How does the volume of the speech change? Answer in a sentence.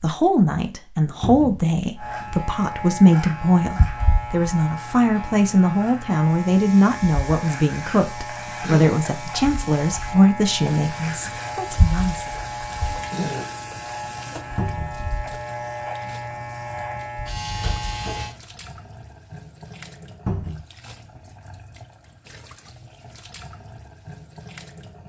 The volume of the speech stays about the same.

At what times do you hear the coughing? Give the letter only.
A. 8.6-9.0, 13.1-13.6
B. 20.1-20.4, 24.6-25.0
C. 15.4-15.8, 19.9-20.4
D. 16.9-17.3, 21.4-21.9
A.